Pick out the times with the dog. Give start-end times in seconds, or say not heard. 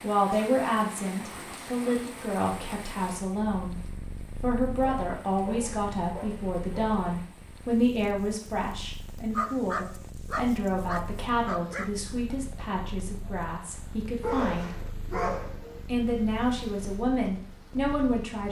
0.2-2.1, 4.8-7.3, 9.3-11.9, 14.2-15.8.